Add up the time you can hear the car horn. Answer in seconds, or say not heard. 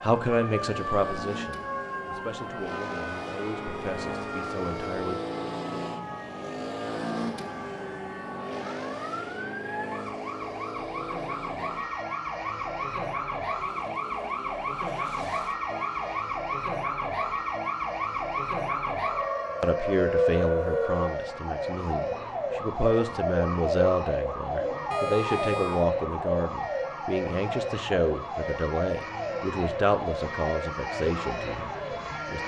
3 s.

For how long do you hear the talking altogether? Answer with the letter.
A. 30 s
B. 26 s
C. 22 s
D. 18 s
D.